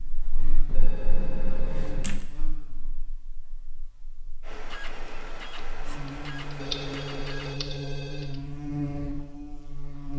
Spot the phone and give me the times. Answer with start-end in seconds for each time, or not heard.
0.7-2.0, 6.5-8.3.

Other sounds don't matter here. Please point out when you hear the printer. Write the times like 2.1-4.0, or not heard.
4.4-7.6.